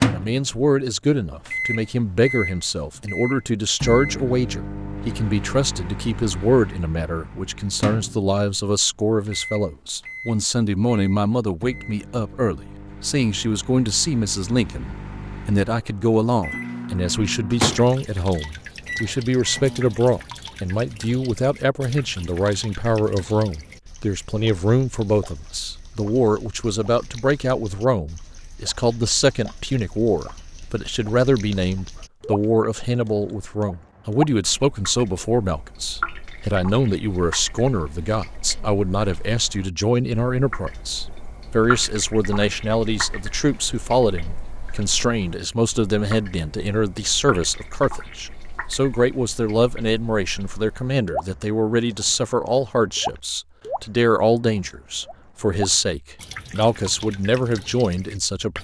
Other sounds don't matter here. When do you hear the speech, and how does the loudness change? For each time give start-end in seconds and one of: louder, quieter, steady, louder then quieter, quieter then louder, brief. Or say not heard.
0.0-58.5 steady.